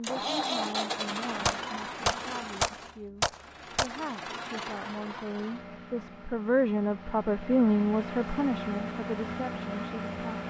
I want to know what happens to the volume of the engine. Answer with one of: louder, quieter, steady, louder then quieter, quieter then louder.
quieter then louder.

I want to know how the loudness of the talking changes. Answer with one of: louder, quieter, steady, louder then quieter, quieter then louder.
louder then quieter.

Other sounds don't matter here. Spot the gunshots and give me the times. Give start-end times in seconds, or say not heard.
1.4-4.0.